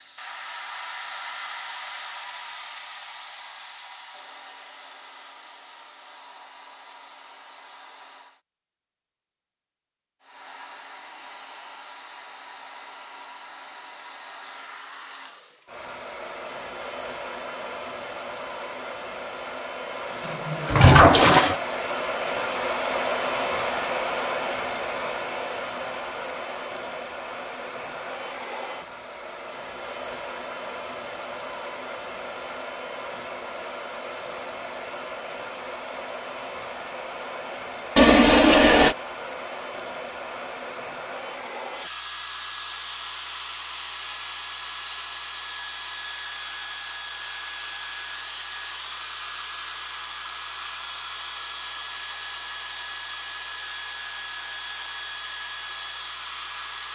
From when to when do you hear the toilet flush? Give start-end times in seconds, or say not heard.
20.2-21.6, 38.0-39.0.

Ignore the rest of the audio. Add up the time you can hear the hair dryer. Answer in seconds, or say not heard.
55 s.